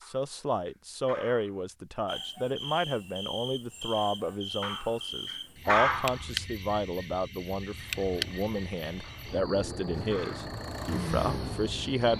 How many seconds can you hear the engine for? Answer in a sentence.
The engine can be heard for 4 seconds in total.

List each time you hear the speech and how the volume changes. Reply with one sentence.
The speech can be heard from 0.1 to 12.1 s, at a steady volume.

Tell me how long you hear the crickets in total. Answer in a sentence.
The crickets can be heard for 10 seconds in total.